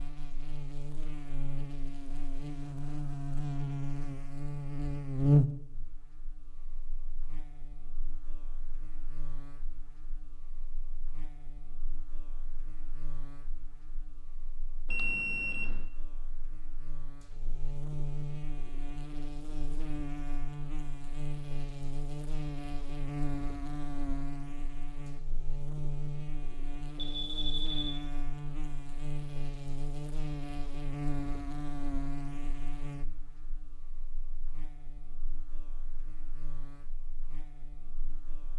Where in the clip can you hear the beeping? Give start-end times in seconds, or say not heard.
14.8-15.8, 26.9-28.1.